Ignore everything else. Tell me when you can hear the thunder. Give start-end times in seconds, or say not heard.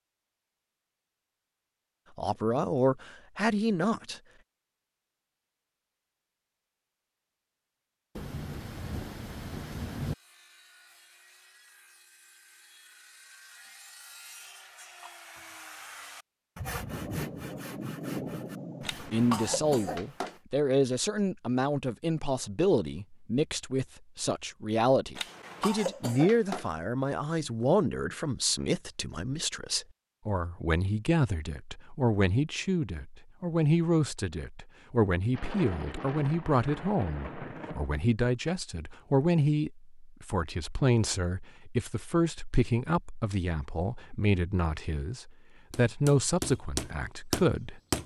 8.2-10.2, 16.8-19.8, 35.3-38.0.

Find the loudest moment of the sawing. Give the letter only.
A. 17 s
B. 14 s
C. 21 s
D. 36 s
A.